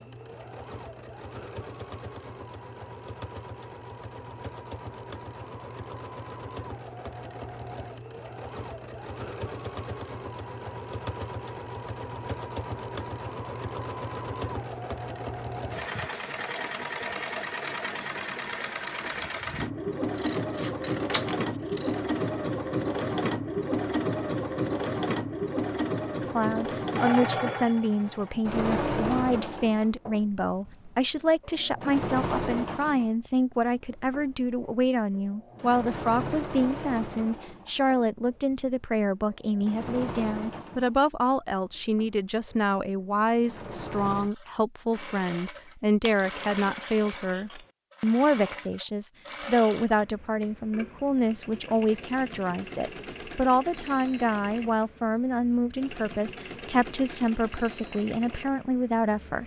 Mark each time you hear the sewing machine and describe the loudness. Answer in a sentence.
The sewing machine can be heard from 0.0 to 59.4 s, getting louder then quieter.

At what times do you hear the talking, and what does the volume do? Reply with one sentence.
The talking can be heard from 26.2 to 59.4 s, at a steady volume.